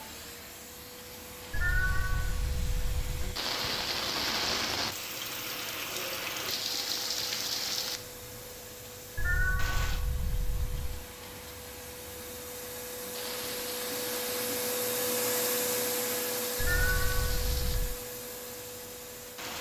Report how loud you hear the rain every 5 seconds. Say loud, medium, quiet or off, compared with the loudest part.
loud, loud, medium, medium.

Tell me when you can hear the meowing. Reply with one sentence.
The meowing can be heard from 1.5 to 3.4 s, from 9.2 to 11.1 s and from 16.6 to 18.0 s.